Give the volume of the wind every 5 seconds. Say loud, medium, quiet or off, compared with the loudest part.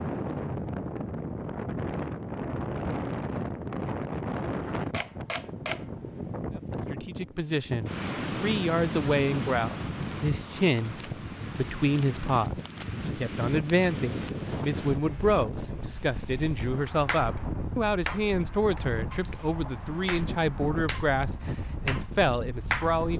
loud, loud, loud, medium, medium.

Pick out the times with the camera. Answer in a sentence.
You can hear the camera from 4.9 to 5.9 s.